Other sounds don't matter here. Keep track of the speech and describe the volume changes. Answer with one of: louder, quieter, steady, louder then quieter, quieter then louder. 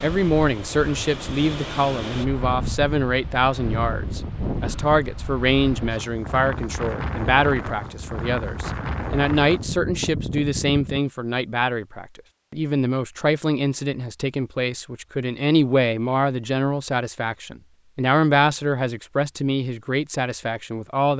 steady.